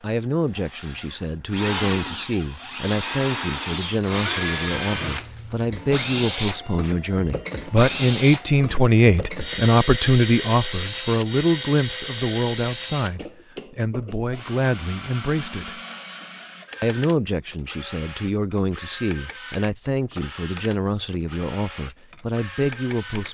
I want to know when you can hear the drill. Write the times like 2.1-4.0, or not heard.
0.0-23.3.